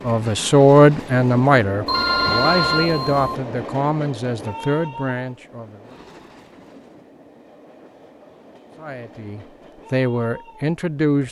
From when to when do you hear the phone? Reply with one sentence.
The phone can be heard from 1.9 to 3.4 s.